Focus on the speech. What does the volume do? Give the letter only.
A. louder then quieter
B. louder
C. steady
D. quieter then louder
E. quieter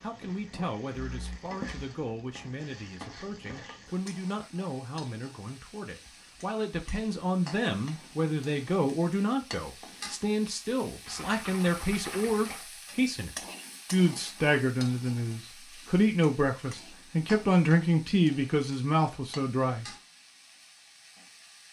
B.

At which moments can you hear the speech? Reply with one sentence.
The speech can be heard from 0.0 to 13.3 s and from 13.9 to 19.9 s.